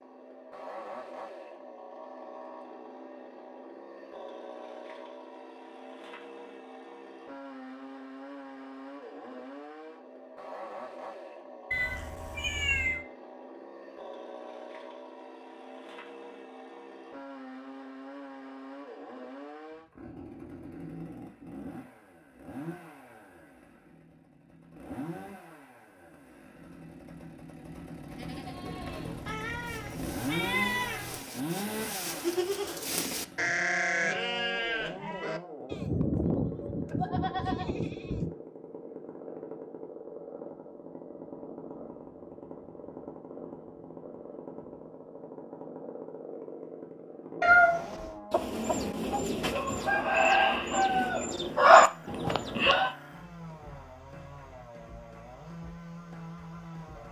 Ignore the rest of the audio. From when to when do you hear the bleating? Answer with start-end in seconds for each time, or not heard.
28.1-38.3.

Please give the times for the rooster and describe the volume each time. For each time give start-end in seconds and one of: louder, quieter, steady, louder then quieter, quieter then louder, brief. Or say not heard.
48.3-53.0 louder then quieter.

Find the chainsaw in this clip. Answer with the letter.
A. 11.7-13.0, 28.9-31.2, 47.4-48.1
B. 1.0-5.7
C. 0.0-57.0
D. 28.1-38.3
C.